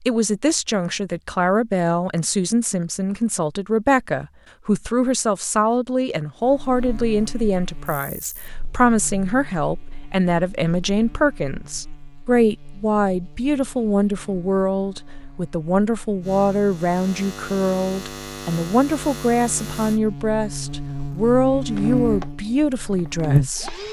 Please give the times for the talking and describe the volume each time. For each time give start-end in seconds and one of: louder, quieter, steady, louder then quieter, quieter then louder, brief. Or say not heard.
0.0-23.7 steady.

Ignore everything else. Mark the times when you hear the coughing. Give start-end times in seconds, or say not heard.
not heard.